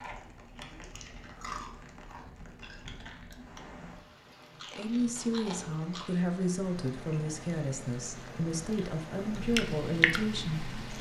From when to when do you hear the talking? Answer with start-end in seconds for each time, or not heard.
4.8-10.9.